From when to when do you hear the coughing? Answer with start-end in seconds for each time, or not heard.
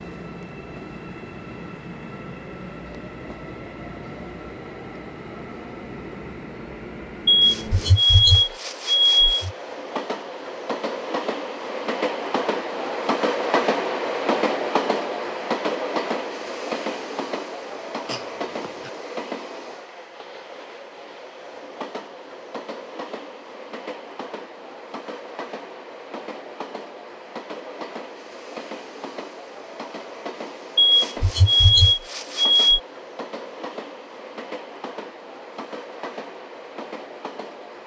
18.1-18.9.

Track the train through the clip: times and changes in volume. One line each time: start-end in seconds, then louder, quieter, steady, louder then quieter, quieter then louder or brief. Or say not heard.
0.0-37.8 louder then quieter.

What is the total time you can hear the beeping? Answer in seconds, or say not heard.
4 s.